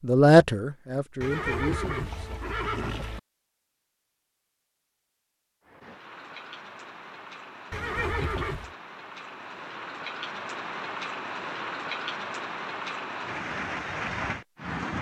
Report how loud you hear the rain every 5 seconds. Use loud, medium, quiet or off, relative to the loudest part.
off, medium, loud.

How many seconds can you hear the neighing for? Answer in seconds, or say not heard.
3 s.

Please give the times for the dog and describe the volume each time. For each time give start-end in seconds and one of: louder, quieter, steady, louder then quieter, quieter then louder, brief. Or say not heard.
not heard.